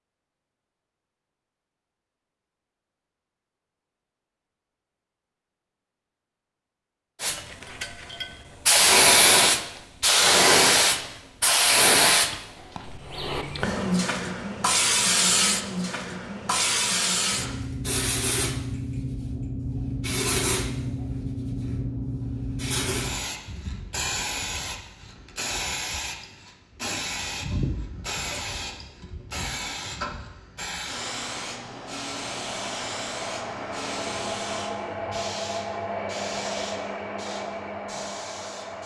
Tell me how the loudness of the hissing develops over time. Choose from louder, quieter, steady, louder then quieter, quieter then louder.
quieter.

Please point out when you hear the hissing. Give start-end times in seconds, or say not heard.
7.2-38.8.